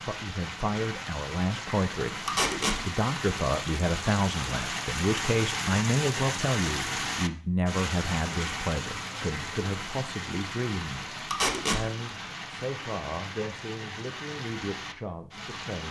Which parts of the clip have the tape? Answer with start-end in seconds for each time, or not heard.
2.2-2.8, 11.3-11.8.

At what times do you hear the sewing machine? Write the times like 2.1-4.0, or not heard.
not heard.